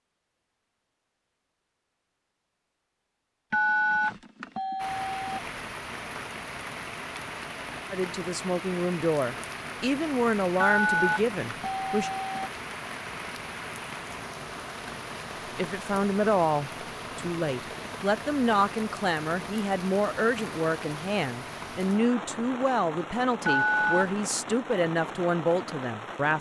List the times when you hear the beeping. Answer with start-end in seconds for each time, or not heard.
3.5-5.4, 10.6-12.5, 23.4-24.2.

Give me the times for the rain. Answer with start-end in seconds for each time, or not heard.
4.8-26.3.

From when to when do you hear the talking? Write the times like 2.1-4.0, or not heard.
7.9-12.1, 15.6-26.3.